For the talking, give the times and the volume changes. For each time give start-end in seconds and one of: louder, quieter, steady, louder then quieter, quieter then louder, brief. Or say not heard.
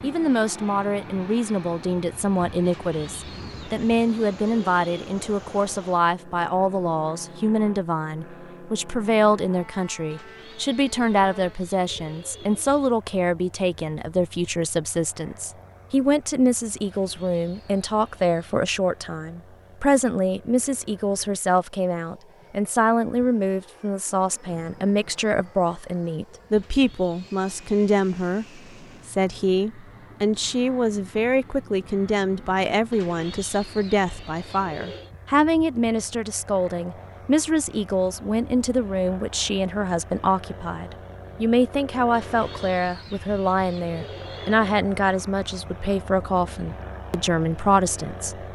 0.0-48.5 steady.